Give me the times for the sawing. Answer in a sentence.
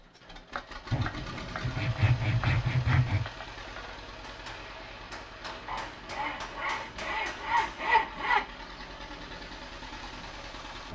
The sawing can be heard from 0.9 to 3.2 s and from 5.7 to 8.4 s.